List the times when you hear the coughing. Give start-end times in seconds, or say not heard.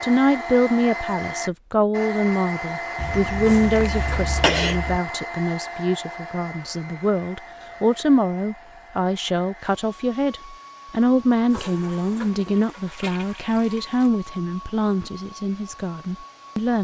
3.0-5.0.